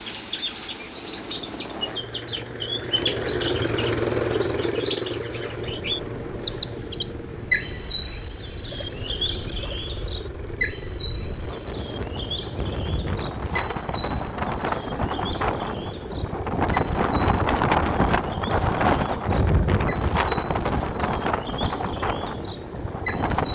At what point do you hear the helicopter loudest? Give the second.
4 s.